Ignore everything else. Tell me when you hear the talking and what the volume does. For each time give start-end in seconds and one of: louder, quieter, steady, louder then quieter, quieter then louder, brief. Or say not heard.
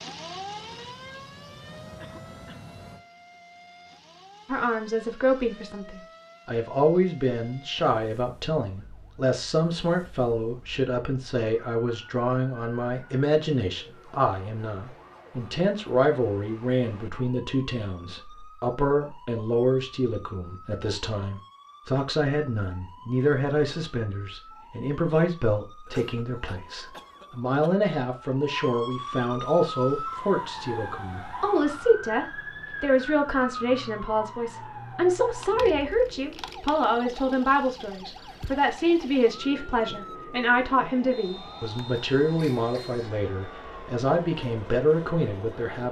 4.5-45.8 steady.